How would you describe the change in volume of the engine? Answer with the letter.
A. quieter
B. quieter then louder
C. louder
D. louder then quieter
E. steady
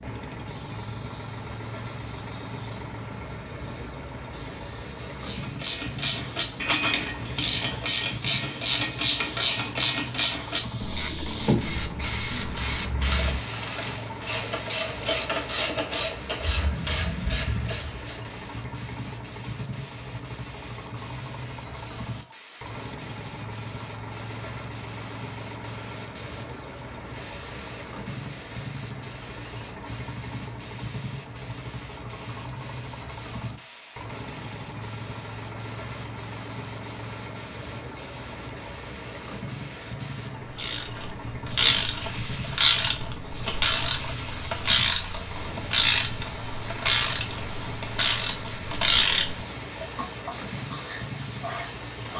E.